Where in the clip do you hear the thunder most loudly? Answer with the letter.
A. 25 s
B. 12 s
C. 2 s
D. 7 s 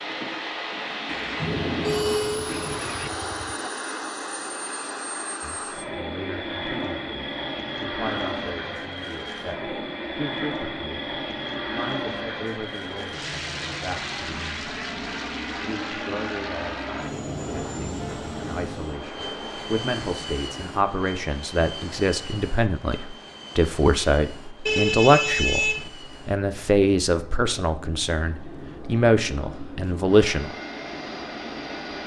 C.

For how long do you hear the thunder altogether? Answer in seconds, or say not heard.
2 s.